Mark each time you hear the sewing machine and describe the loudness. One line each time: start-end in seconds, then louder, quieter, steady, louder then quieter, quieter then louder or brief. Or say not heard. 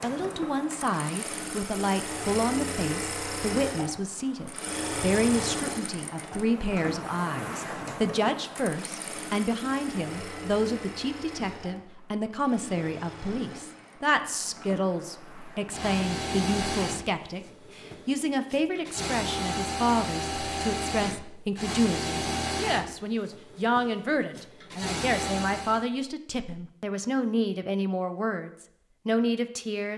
0.0-25.9 quieter then louder.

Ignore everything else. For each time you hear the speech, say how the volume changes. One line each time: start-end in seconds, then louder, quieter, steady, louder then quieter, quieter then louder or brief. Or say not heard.
0.0-29.9 steady.